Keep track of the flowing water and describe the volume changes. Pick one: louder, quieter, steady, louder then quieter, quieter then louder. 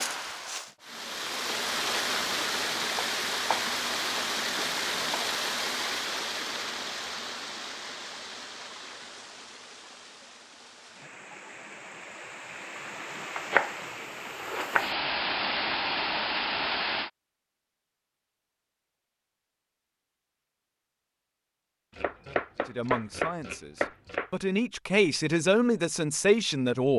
quieter then louder.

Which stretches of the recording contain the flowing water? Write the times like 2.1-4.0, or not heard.
0.0-17.1.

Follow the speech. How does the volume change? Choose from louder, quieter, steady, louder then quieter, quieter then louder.
louder.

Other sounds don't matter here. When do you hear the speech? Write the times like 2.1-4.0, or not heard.
22.6-26.9.